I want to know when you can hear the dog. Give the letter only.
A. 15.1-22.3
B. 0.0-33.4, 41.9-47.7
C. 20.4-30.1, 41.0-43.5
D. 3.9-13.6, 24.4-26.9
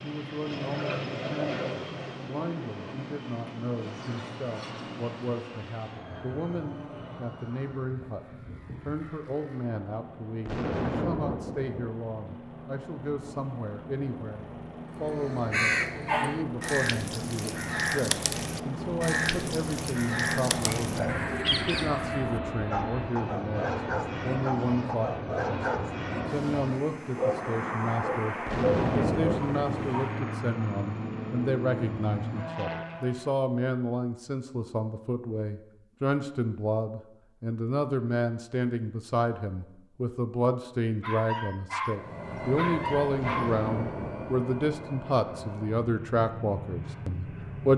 C.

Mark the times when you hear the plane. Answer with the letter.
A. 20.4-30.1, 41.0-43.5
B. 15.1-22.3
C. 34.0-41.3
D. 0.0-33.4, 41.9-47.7
D.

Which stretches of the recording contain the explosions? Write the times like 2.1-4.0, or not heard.
10.4-11.9, 28.4-29.9, 43.1-44.5.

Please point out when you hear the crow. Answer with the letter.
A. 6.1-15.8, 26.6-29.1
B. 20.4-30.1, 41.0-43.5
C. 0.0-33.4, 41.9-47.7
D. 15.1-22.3
D.